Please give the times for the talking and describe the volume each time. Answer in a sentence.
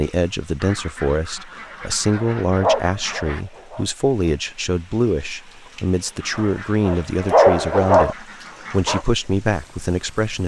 You can hear the talking from 0.0 to 10.4 s, at a steady volume.